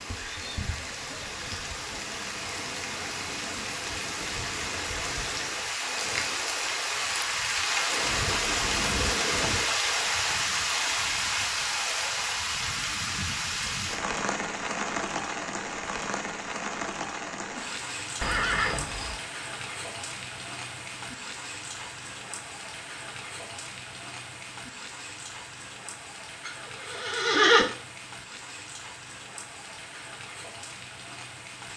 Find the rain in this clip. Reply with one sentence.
You can hear the rain from 0.0 to 31.7 s.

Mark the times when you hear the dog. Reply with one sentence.
You can't hear the dog here.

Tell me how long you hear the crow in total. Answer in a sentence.
The crow can't be heard in this clip.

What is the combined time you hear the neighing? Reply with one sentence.
The neighing can be heard for 4 seconds in total.